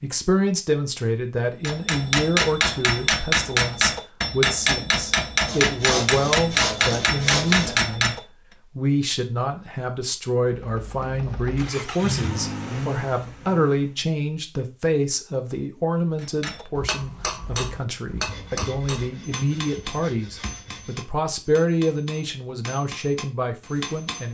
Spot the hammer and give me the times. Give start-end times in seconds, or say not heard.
1.6-8.2, 16.2-24.3.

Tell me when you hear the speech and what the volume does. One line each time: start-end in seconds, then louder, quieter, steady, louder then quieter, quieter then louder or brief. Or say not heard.
0.0-24.3 steady.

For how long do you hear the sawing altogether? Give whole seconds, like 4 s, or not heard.
5 s.